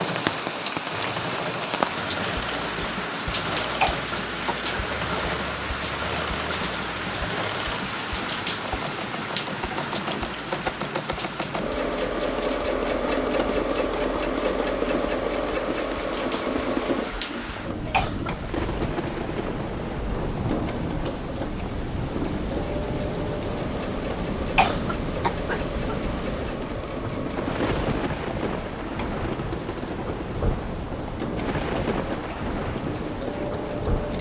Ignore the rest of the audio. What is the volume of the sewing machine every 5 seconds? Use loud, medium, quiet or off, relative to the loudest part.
medium, medium, loud, loud, medium, medium, medium.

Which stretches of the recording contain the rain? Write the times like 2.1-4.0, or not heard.
0.0-34.1.